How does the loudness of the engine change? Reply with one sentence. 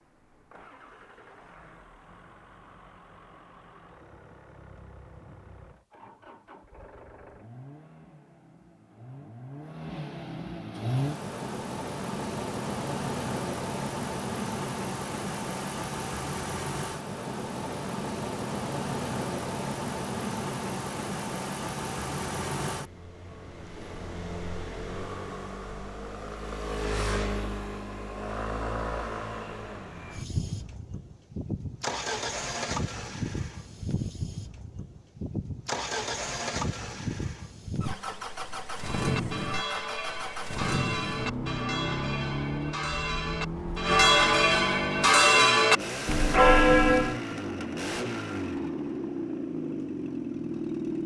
The loudness of the engine goes up.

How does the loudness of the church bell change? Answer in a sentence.
The volume of the church bell goes up.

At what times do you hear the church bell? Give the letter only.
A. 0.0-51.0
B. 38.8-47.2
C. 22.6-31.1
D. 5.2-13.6
B.